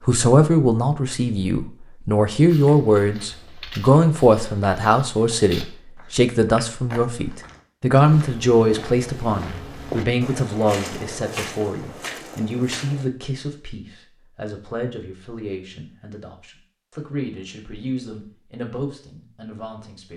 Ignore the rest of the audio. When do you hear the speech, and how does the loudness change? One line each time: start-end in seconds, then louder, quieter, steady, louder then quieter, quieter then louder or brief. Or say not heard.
0.1-20.1 quieter.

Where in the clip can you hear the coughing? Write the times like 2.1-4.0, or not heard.
not heard.